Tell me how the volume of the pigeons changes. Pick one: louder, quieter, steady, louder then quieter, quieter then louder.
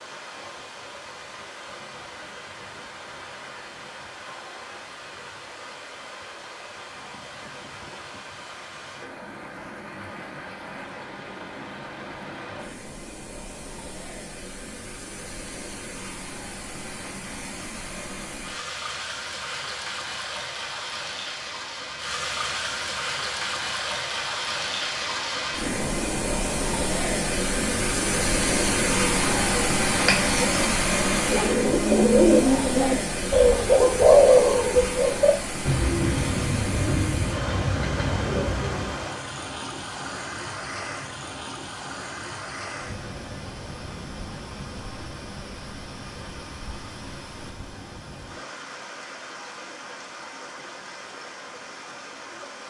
louder then quieter.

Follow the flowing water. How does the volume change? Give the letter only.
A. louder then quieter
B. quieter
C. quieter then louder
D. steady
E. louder
A.